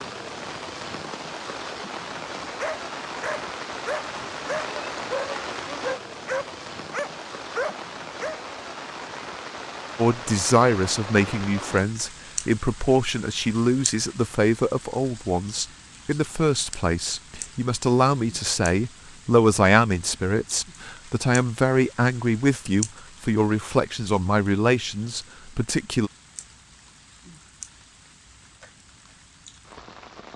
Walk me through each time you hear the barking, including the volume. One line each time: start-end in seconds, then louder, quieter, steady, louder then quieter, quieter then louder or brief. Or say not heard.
2.5-8.4 steady.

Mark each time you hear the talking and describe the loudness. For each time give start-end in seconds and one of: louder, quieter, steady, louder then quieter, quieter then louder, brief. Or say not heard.
9.9-26.1 steady.